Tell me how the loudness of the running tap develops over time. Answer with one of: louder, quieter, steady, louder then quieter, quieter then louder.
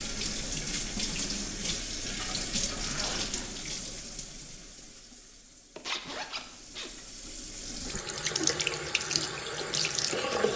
quieter then louder.